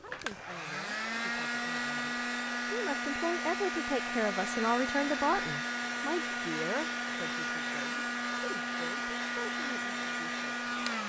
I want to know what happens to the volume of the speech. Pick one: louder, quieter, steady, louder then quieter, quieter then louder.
louder then quieter.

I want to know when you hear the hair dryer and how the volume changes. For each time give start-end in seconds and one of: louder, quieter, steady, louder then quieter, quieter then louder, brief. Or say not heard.
0.0-11.0 steady.